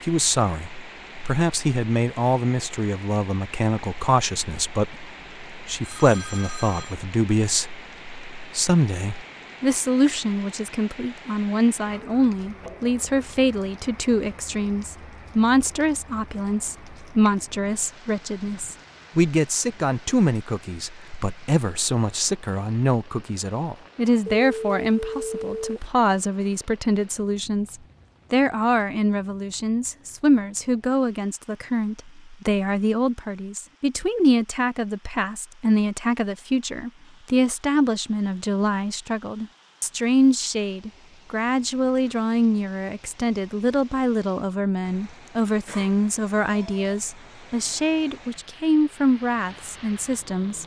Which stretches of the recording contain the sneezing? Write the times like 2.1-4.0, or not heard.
not heard.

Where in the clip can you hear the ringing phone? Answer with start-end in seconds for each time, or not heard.
5.8-7.0, 24.2-25.9, 45.6-46.9.